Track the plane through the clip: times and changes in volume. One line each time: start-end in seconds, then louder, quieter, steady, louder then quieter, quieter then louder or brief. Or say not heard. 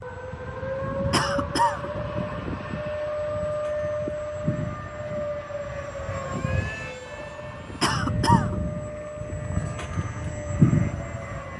0.0-11.5 louder.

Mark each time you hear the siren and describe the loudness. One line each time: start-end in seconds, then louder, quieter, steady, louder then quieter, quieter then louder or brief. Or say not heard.
0.0-11.5 quieter.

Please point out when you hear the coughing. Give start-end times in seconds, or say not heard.
1.1-1.9, 7.8-8.6.